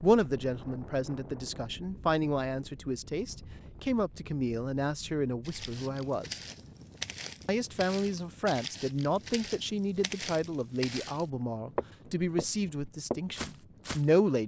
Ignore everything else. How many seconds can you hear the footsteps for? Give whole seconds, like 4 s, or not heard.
9 s.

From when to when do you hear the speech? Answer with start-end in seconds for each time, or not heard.
0.0-6.4, 7.5-14.4.